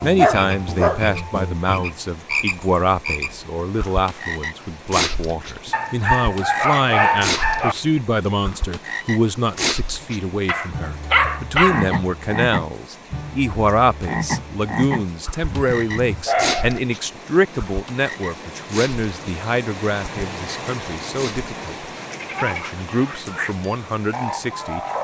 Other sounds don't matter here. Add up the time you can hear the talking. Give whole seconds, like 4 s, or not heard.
25 s.